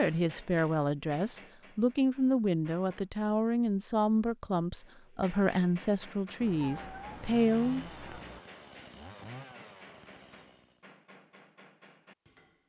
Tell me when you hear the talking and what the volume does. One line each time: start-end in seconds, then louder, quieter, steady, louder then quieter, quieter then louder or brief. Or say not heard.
0.0-8.2 steady.